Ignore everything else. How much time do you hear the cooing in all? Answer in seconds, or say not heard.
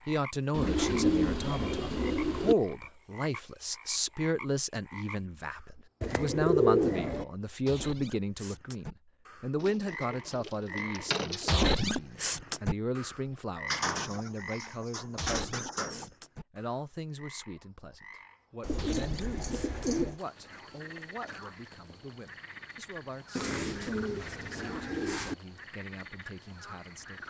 11 s.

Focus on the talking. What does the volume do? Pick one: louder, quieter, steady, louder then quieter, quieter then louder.
quieter.